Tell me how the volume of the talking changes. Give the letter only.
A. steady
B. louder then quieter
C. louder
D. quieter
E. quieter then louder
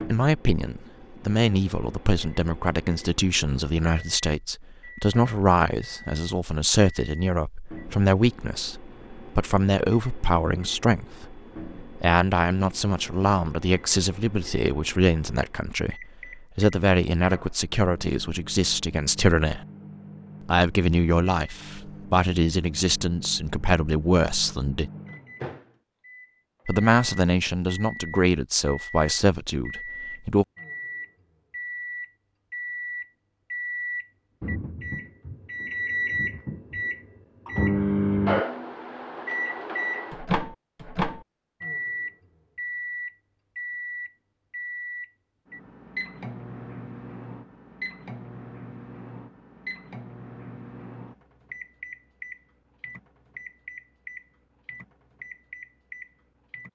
A.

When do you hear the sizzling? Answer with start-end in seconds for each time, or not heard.
not heard.